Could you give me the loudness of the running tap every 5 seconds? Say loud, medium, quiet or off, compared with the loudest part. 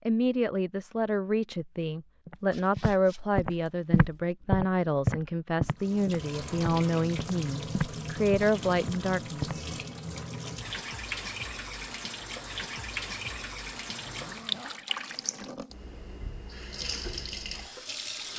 off, loud, loud, loud.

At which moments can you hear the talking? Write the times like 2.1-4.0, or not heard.
0.1-9.6.